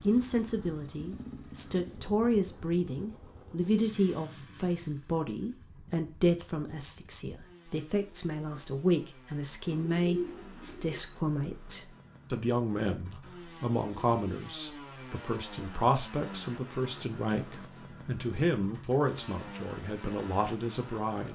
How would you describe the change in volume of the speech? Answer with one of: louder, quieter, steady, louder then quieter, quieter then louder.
steady.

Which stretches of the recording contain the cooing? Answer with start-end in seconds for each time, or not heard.
9.7-11.0.